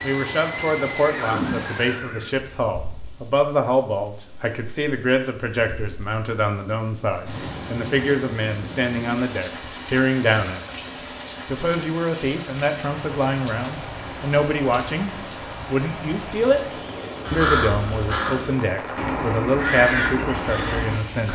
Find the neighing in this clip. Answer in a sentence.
You can hear the neighing from 0.0 to 2.4 s.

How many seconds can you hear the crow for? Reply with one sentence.
You can hear the crow for 4 seconds altogether.